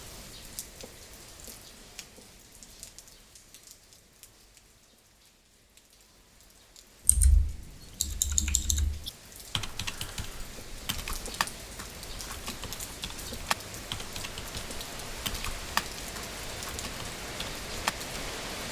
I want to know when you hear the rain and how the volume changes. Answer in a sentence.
You can hear the rain from 0.0 to 18.6 s, getting quieter then louder.